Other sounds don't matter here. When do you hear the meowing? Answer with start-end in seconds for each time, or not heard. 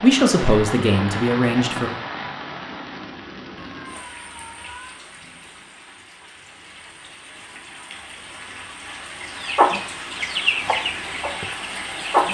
3.7-5.0.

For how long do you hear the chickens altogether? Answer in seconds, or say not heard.
3 s.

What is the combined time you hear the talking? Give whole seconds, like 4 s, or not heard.
2 s.